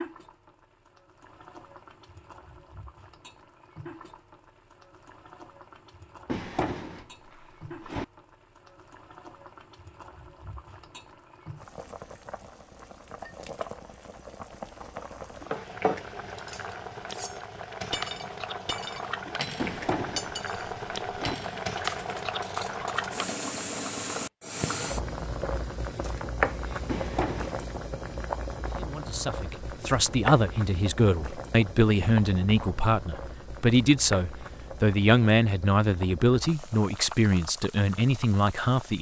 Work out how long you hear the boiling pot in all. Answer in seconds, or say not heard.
39 s.